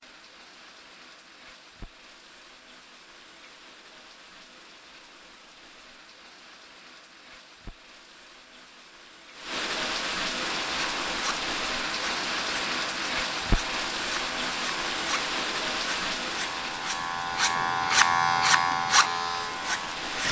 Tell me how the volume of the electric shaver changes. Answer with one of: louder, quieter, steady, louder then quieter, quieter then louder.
louder.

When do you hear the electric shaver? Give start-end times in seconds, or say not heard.
10.4-20.2.